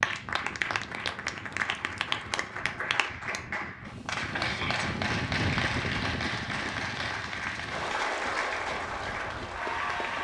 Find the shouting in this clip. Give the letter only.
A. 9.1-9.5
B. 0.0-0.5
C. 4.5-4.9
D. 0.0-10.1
C.